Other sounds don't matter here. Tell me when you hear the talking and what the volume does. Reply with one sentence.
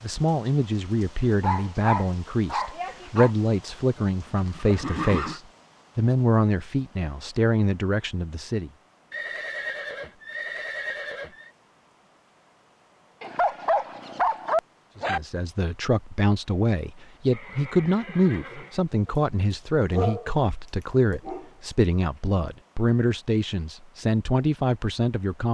The talking can be heard from 0.0 to 8.7 s, at a steady volume; and from 15.1 to 25.5 s, at a steady volume.